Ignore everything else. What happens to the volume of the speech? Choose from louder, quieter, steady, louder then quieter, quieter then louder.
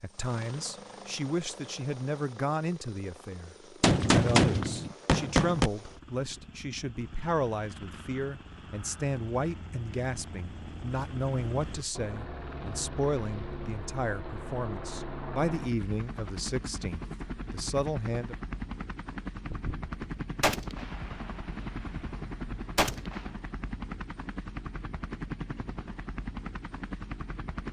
steady.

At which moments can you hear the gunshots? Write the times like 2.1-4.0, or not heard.
3.8-5.7, 19.4-23.3.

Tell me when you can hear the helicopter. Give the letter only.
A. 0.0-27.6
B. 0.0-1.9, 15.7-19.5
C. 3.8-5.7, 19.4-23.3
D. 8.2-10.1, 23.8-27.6
A.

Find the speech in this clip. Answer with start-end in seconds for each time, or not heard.
0.0-18.4.